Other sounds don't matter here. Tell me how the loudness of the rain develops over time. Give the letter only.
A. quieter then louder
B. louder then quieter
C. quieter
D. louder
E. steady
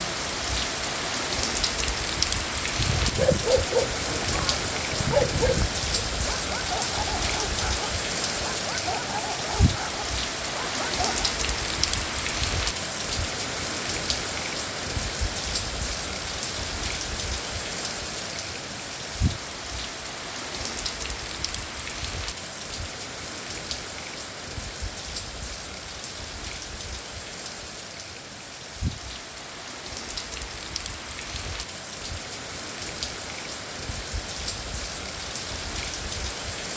C.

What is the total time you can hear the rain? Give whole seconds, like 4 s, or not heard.
37 s.